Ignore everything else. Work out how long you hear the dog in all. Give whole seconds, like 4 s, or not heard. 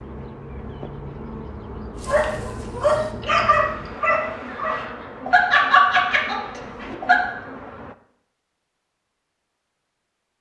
5 s.